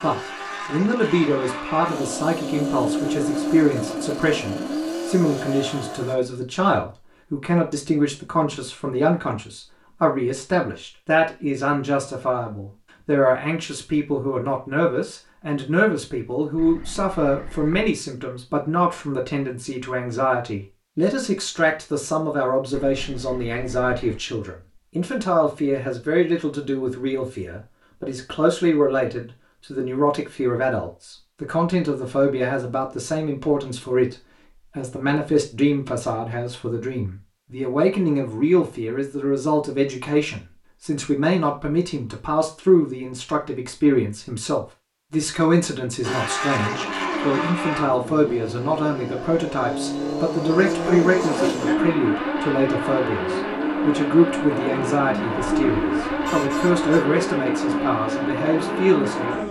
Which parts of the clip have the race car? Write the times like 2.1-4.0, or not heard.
0.0-6.2, 46.0-59.4.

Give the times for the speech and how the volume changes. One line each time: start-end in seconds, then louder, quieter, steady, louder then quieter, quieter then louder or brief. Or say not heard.
0.0-34.1 steady
34.8-59.4 steady.